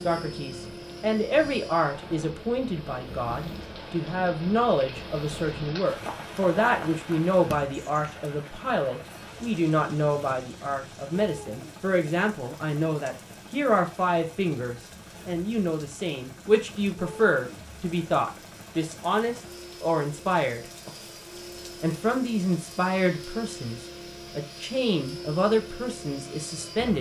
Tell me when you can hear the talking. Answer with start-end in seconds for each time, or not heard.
0.0-20.9, 21.8-26.9.